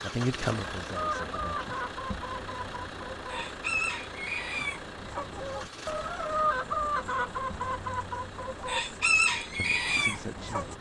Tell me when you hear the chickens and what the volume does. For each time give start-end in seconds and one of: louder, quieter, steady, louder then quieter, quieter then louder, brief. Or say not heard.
0.9-10.7 louder.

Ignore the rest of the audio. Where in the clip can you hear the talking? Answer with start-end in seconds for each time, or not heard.
0.0-1.9, 9.6-10.7.